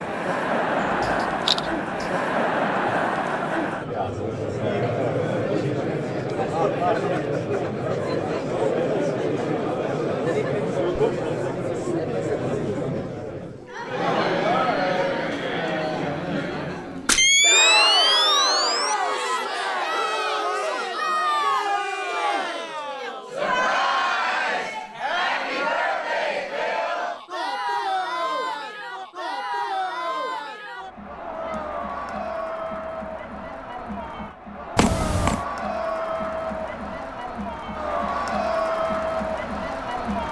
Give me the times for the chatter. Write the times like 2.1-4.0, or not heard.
0.0-40.2.